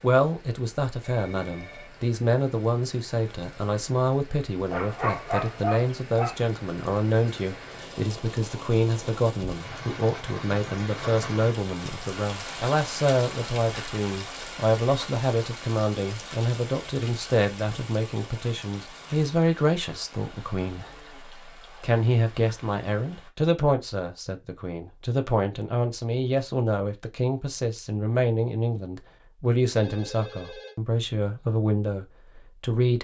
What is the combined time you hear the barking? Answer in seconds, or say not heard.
2 s.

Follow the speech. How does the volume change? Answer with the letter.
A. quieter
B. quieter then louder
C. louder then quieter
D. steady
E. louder
D.